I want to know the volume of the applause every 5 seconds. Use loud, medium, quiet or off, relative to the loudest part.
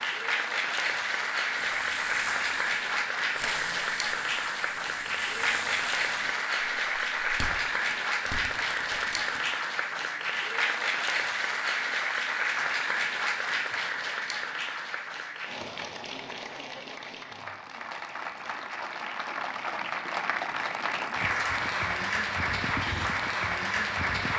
loud, loud, loud, medium, loud.